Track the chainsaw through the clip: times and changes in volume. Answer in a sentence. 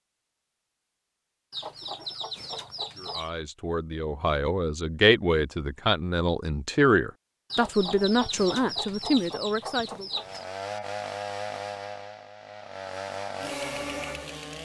The chainsaw can be heard from 10.1 to 14.6 s, getting quieter then louder.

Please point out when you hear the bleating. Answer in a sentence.
The bleating can't be heard in this clip.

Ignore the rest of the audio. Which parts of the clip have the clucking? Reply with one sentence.
You can hear the clucking from 1.5 to 3.3 s and from 7.5 to 10.4 s.